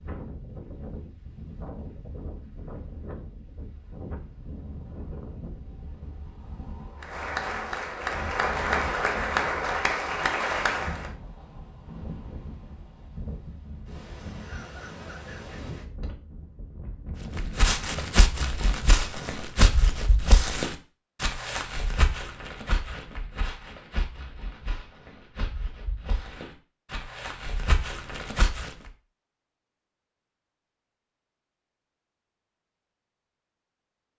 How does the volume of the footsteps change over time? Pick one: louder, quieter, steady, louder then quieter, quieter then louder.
quieter then louder.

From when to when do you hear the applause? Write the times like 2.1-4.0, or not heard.
7.0-11.1.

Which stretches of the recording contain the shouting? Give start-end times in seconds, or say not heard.
not heard.